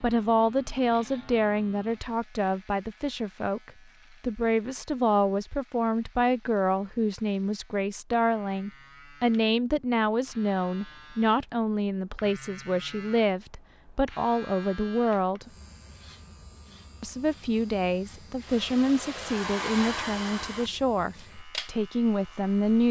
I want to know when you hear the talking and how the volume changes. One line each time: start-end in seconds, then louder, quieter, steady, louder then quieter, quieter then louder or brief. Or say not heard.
0.0-15.5 steady
17.0-22.8 steady.